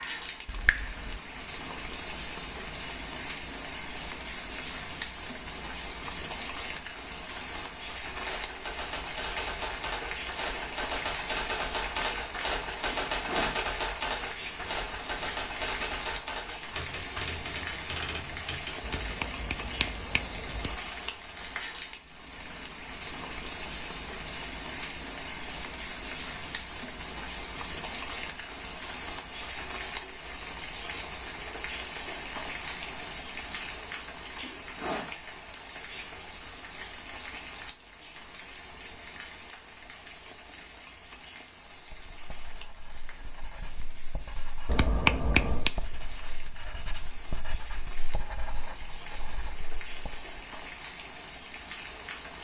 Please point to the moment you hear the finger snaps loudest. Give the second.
45 s.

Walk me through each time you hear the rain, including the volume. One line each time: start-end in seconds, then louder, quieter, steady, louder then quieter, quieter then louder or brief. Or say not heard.
0.0-52.3 quieter.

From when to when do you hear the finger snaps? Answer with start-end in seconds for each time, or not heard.
0.5-1.2, 18.8-20.8, 44.6-45.7.